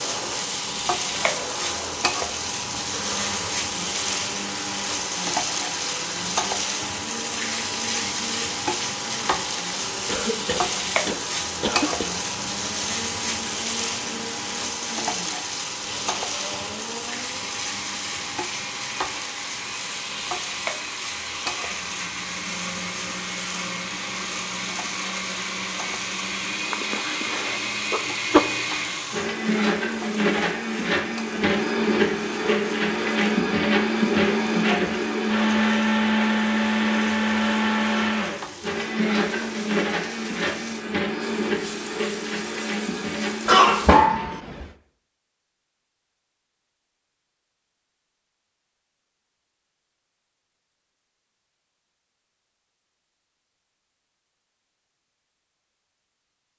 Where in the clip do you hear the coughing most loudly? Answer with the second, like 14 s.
44 s.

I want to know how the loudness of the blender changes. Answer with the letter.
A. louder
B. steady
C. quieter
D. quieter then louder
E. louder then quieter
A.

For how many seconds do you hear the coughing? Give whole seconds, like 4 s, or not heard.
5 s.